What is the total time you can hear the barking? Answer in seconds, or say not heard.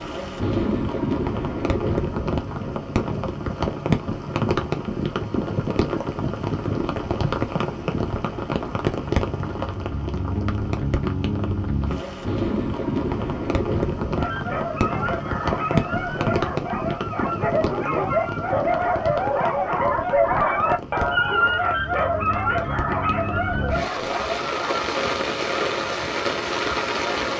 11 s.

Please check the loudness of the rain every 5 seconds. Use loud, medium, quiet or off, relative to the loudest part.
loud, loud, loud, loud, medium, loud.